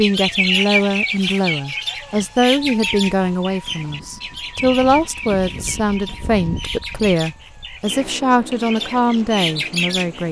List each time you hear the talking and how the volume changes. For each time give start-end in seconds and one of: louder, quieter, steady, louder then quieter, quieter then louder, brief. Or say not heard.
0.0-10.2 steady.